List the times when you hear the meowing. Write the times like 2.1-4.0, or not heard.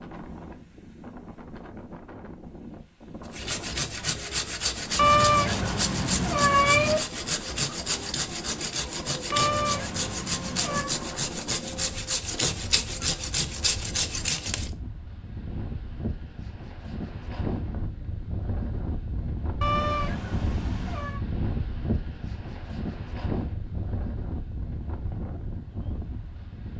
5.0-7.0, 9.3-10.9, 19.6-21.2.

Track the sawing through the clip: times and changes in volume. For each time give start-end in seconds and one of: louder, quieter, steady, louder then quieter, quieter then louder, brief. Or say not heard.
3.3-14.7 steady.